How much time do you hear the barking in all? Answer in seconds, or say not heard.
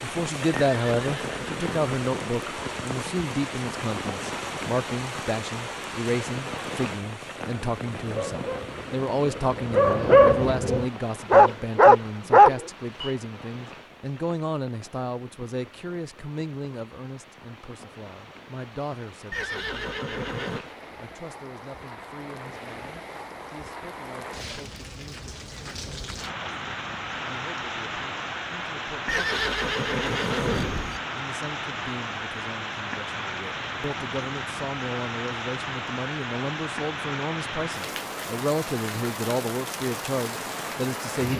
6 s.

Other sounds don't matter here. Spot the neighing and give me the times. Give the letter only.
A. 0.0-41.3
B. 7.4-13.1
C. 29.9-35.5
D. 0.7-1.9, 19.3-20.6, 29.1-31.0
D.